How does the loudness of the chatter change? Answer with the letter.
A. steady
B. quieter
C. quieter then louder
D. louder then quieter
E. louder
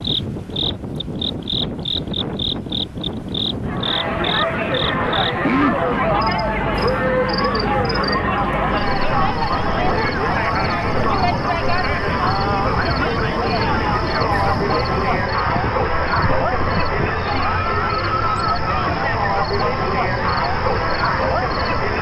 A.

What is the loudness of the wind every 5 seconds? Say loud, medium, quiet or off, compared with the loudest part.
loud, loud, loud, loud, off.